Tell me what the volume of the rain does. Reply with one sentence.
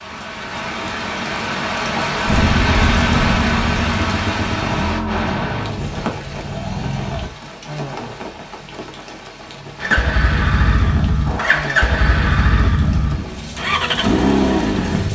The loudness of the rain goes down.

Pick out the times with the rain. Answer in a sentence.
You can hear the rain from 0.0 to 15.1 s.